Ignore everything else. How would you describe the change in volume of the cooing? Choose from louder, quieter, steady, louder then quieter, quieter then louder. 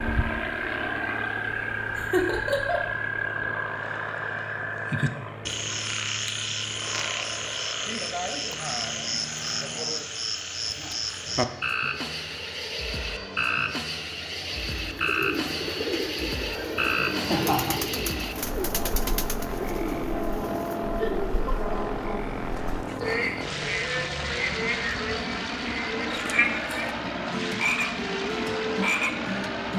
steady.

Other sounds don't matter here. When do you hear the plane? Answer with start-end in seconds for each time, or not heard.
0.0-29.7.